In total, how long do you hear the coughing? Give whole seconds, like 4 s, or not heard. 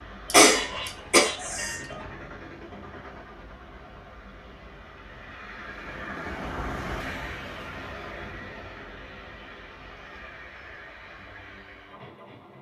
2 s.